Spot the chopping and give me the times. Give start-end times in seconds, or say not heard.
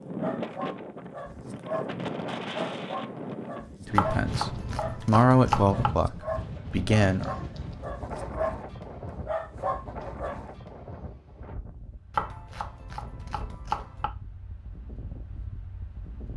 4.0-5.9, 12.1-14.1.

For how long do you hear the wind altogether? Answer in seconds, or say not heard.
16 s.